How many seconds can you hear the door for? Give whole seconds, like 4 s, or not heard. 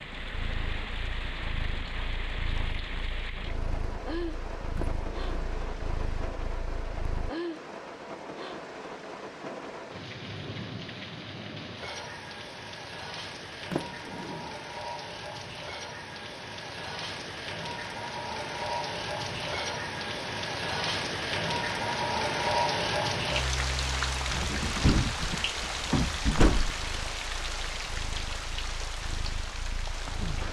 4 s.